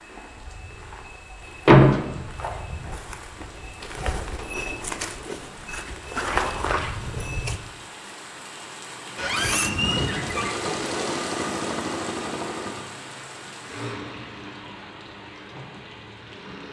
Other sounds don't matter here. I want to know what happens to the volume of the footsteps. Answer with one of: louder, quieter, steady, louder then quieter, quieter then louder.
louder.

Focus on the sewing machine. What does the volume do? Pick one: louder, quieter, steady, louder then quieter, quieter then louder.
quieter.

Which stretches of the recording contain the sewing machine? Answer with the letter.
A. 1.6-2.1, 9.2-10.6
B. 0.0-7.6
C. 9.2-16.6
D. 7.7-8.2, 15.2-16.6
C.